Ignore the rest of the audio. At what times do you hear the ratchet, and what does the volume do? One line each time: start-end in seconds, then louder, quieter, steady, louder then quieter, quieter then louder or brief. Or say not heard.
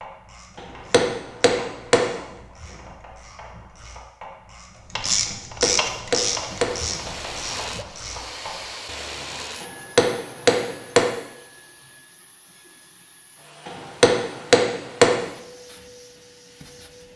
0.0-8.7 louder then quieter.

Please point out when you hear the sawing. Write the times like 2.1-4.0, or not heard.
not heard.